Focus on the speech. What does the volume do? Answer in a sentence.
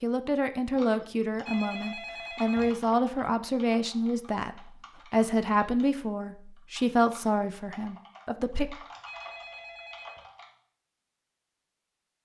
The volume of the speech stays about the same.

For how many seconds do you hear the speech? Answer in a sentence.
You can hear the speech for 9 seconds altogether.